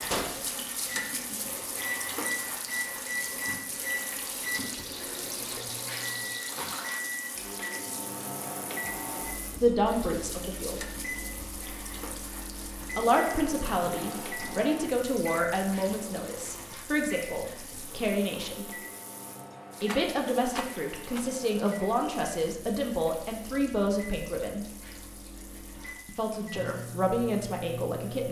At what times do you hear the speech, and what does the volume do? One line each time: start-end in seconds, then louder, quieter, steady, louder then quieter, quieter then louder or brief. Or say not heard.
9.5-10.8 brief
12.9-18.7 steady
19.8-24.6 steady
26.1-28.2 brief.